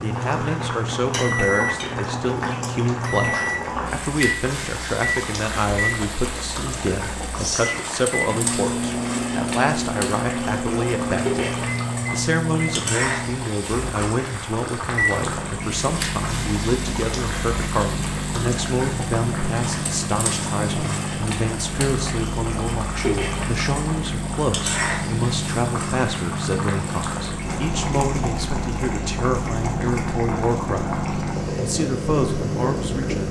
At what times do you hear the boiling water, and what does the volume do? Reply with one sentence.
The boiling water can be heard from 0.0 to 33.2 s, at a steady volume.